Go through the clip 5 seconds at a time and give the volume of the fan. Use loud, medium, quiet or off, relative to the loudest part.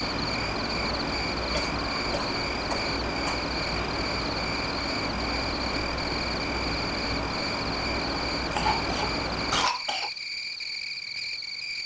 loud, loud, off.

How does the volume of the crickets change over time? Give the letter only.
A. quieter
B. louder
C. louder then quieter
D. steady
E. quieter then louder
D.